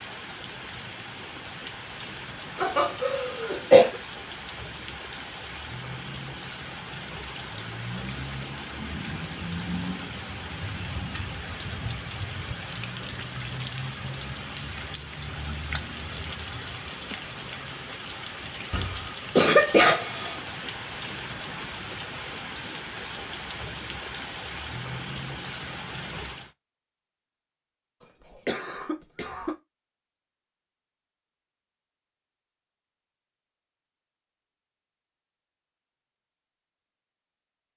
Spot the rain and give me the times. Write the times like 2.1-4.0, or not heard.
0.0-26.5.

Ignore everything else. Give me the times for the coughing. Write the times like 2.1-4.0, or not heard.
2.6-4.0, 18.7-20.4, 28.3-29.6.